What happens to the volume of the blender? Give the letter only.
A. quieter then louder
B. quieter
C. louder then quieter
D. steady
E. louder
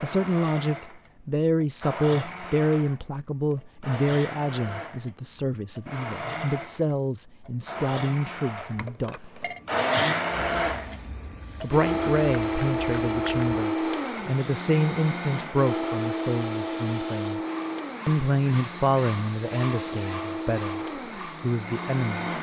C.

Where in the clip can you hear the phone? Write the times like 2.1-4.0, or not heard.
8.7-9.6.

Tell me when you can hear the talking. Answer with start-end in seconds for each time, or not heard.
0.0-9.2, 11.6-17.4, 18.1-22.3.